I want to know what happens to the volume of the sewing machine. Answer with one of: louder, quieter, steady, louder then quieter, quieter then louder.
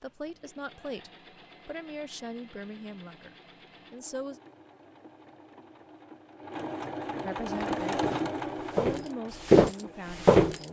louder then quieter.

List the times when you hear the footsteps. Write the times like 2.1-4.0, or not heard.
7.5-10.6.